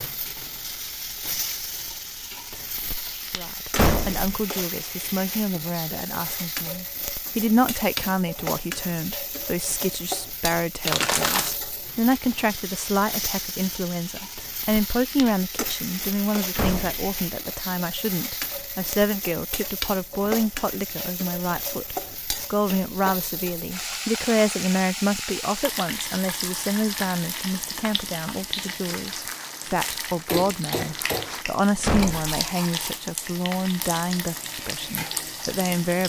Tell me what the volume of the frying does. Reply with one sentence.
The loudness of the frying stays about the same.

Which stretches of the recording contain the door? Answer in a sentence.
You can hear the door from 3.8 to 4.5 s, from 16.5 to 17.1 s and from 31.8 to 32.4 s.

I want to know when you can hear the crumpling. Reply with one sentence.
The crumpling can be heard from 10.8 to 11.6 s and from 28.9 to 31.5 s.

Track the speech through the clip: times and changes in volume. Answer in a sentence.
The speech can be heard from 3.4 to 36.0 s, at a steady volume.